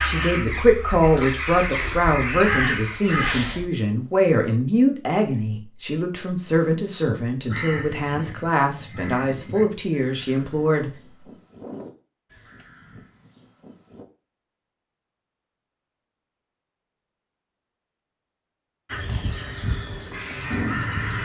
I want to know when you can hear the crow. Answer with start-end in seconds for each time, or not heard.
0.0-3.6, 7.5-14.1, 18.9-21.2.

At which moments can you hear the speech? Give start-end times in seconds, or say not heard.
0.0-10.9.